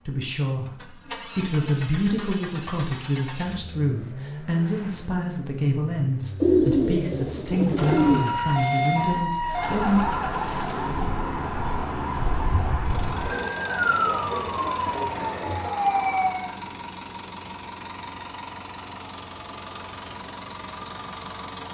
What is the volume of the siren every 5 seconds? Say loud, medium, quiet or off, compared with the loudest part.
off, loud, loud, loud, off.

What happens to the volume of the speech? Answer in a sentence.
The loudness of the speech stays about the same.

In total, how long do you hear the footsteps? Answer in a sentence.
You can't hear the footsteps here.